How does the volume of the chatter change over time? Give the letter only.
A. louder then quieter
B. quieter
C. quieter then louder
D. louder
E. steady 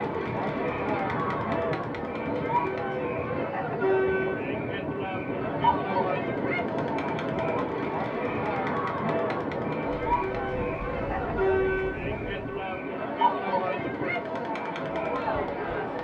E.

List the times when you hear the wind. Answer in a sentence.
You can hear the wind from 0.0 to 12.5 s.